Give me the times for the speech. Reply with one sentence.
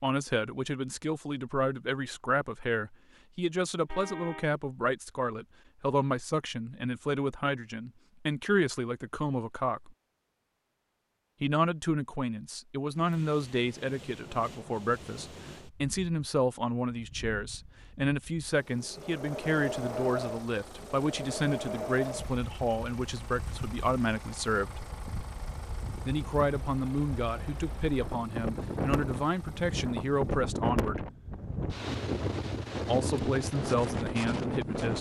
You can hear the speech from 0.0 to 9.9 s, from 11.4 to 24.9 s, from 26.1 to 31.1 s and from 32.9 to 34.9 s.